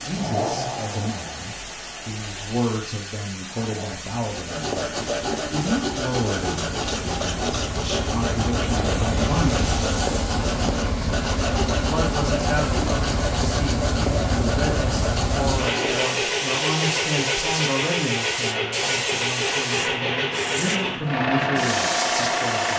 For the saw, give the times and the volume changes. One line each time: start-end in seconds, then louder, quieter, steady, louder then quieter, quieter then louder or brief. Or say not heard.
4.2-16.3 steady.